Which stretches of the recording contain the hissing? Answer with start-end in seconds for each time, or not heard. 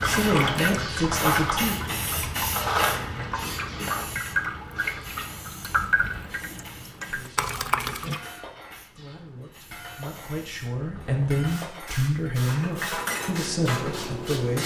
0.0-14.6.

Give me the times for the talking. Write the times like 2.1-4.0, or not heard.
0.0-1.8, 7.0-14.6.